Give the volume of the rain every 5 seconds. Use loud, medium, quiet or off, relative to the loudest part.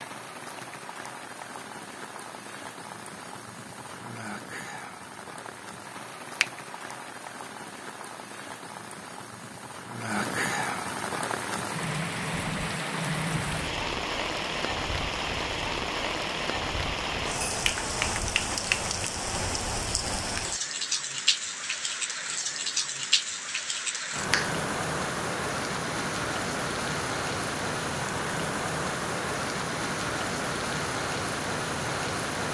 medium, medium, loud, loud, loud, loud, loud.